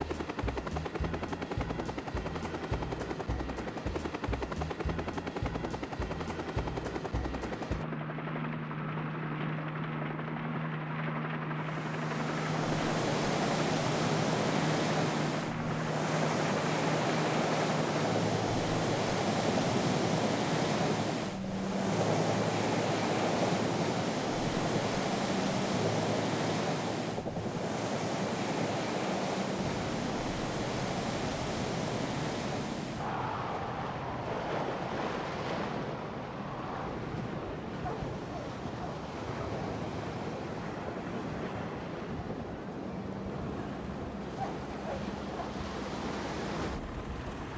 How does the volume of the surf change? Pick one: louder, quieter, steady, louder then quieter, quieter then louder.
quieter.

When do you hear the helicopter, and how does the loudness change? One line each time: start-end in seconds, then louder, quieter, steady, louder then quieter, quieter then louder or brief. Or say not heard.
0.0-47.5 quieter.